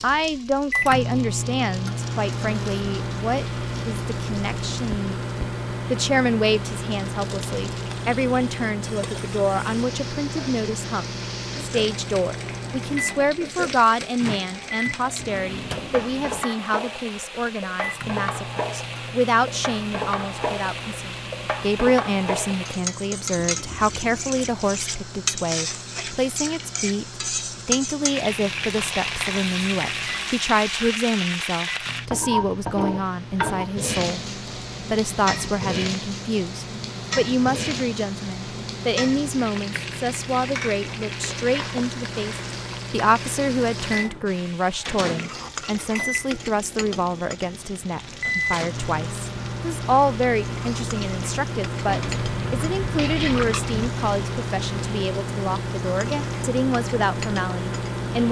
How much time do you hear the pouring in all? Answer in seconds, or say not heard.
4 s.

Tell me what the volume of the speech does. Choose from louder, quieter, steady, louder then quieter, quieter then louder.
steady.